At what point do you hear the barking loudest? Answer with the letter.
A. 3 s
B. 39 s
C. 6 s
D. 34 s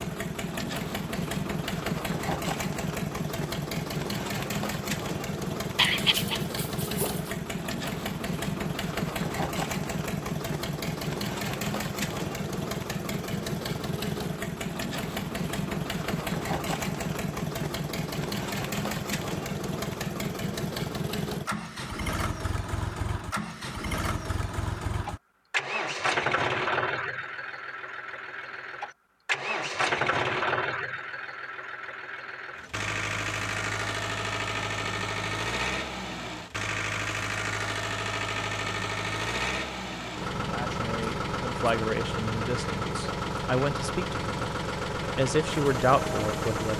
C.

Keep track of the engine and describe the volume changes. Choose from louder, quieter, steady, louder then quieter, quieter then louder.
steady.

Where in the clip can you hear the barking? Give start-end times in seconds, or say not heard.
5.8-7.3.